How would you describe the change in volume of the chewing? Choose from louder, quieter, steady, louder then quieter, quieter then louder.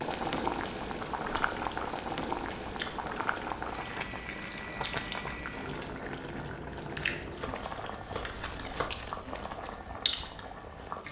louder.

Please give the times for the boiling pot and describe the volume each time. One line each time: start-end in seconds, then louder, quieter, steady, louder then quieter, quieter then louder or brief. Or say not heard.
0.0-11.0 quieter.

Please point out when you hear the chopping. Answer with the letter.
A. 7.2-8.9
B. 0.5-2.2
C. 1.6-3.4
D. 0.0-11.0
A.